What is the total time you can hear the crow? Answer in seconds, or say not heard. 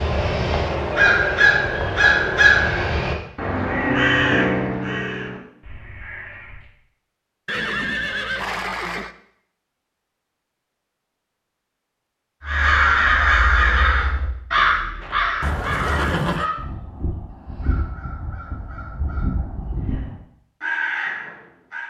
16 s.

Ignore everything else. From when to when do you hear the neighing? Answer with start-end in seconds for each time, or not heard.
7.5-9.2, 15.4-16.5.